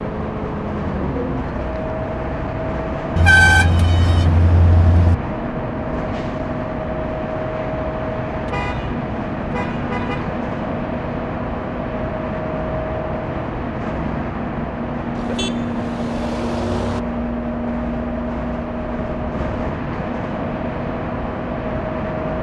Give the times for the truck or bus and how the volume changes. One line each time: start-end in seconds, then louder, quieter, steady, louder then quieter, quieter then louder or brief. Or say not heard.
0.0-22.3 steady.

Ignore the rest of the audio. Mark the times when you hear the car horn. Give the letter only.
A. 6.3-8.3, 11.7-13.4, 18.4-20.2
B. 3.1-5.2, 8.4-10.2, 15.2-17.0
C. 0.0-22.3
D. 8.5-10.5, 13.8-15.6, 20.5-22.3
B.